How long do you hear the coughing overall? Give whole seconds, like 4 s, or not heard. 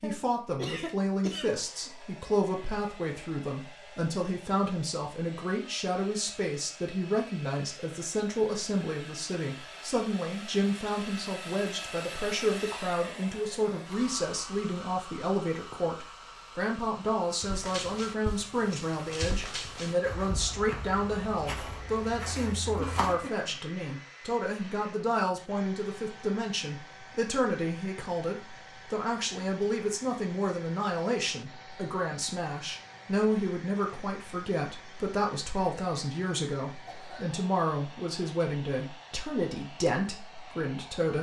3 s.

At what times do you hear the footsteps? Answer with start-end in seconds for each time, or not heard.
17.4-23.2.